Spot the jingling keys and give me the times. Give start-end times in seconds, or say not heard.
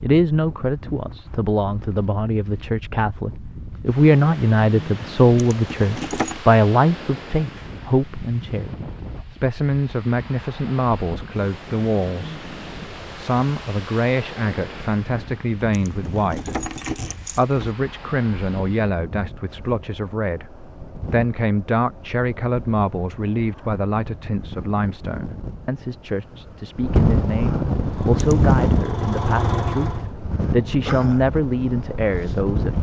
5.3-6.4, 15.7-17.7, 28.1-28.8.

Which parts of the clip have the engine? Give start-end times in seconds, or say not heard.
27.8-30.1.